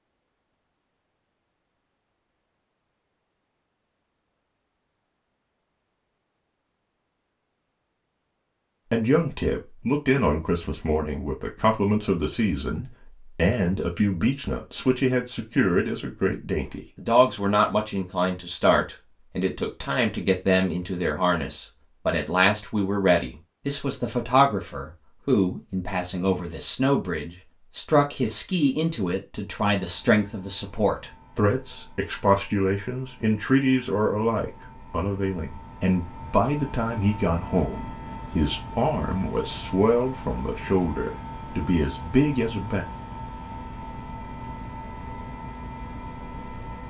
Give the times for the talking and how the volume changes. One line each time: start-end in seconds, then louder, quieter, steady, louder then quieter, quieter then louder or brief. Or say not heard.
8.9-42.9 steady.